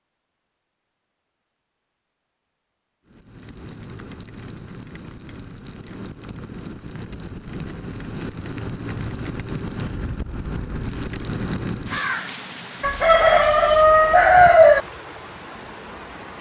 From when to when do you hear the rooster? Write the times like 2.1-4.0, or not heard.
12.8-14.8.